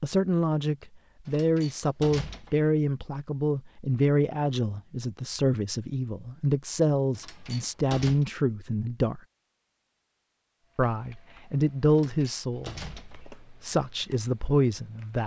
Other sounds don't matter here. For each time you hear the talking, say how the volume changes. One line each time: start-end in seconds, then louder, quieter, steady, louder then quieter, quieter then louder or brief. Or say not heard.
0.0-9.2 steady
10.8-15.2 quieter then louder.